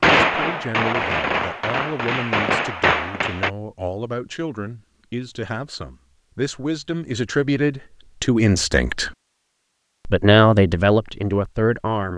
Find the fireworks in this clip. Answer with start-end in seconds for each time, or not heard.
0.0-3.5.